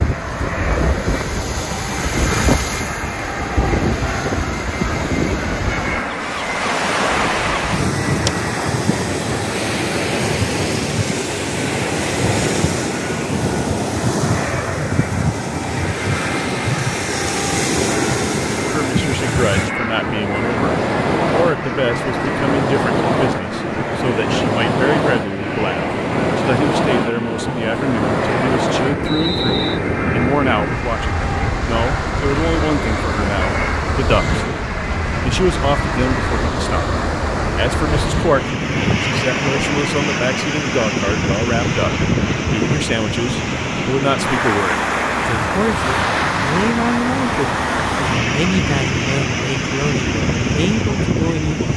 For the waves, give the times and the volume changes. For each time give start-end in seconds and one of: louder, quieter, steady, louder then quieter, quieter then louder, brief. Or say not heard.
0.0-51.7 steady.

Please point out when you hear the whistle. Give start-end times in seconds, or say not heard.
29.1-29.8.